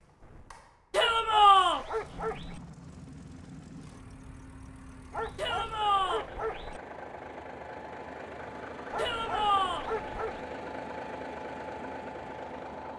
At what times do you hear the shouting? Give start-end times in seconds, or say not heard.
0.9-1.9, 5.3-6.2, 8.9-9.8.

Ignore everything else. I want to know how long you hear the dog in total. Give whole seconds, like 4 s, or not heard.
5 s.